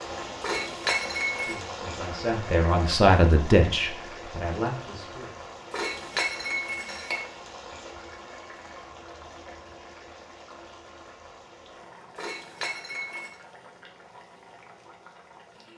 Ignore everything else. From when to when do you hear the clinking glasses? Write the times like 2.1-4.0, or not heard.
0.4-1.6, 5.7-7.2, 12.2-13.3.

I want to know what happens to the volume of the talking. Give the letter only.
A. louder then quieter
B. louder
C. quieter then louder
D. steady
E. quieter
A.